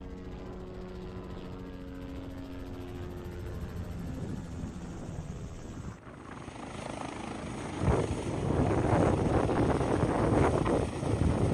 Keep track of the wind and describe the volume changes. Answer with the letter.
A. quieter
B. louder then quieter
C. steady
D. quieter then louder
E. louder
E.